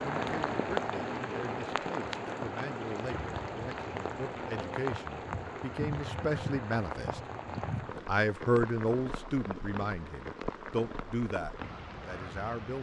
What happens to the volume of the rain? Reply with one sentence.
The volume of the rain goes down.